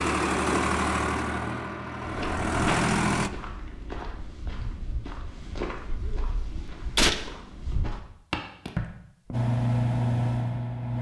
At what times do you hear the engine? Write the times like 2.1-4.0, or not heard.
0.0-3.3, 9.3-10.9.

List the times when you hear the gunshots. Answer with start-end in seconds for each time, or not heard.
5.8-7.2.